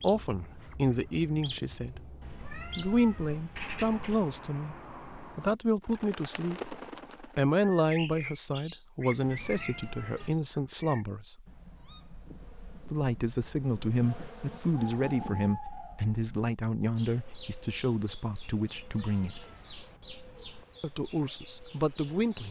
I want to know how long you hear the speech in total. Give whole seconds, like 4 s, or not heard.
19 s.